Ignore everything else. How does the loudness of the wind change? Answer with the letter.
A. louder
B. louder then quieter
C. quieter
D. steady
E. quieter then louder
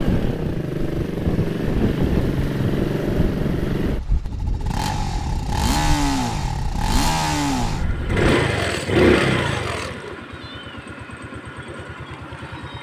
C.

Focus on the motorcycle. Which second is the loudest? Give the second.
9 s.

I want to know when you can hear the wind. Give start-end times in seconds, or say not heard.
0.0-8.3.